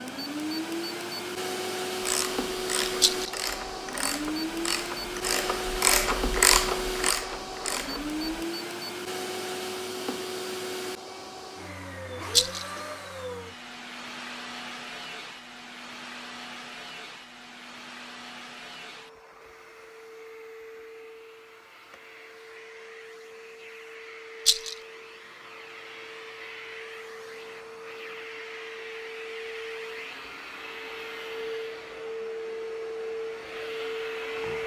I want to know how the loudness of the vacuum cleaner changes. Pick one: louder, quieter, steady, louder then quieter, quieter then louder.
quieter then louder.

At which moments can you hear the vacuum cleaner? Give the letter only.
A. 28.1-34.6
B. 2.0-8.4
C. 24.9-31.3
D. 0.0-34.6
D.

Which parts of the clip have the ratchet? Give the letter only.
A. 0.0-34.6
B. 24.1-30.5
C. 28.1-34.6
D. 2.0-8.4
D.